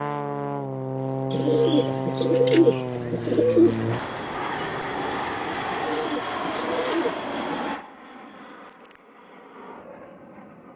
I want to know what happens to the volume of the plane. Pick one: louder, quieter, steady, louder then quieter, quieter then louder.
quieter.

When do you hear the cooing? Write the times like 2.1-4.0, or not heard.
1.3-3.8, 5.7-7.8.